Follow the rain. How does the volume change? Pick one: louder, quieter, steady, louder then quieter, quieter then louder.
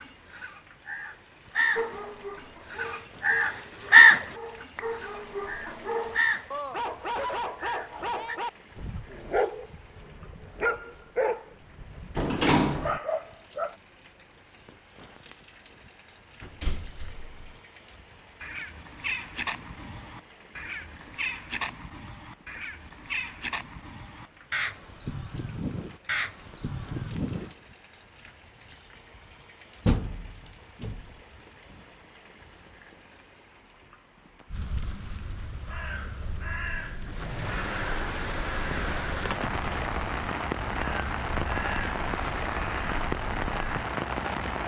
louder.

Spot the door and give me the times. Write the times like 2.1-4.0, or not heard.
12.2-13.0, 16.4-17.6, 29.9-31.1.